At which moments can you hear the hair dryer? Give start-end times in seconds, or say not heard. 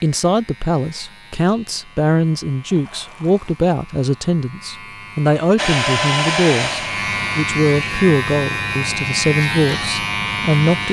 5.5-7.5.